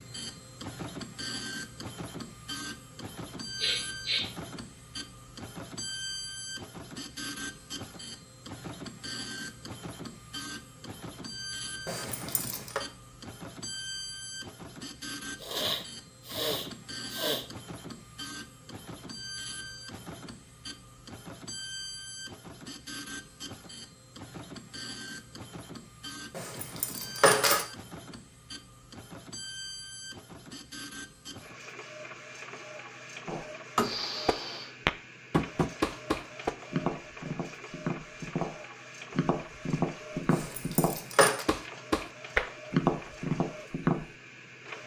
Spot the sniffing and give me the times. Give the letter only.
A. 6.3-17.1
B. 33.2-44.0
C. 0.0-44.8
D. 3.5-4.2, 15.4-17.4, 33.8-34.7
D.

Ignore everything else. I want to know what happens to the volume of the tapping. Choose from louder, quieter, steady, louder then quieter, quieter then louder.
quieter then louder.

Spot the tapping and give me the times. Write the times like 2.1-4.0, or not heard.
33.2-44.0.